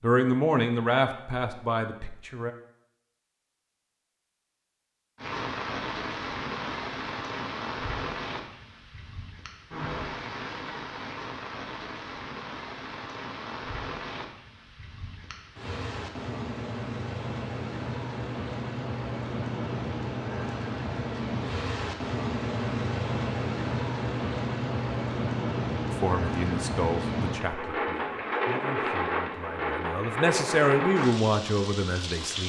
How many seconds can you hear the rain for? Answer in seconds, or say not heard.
27 s.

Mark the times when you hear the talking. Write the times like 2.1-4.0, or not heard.
0.0-2.5, 26.0-32.4.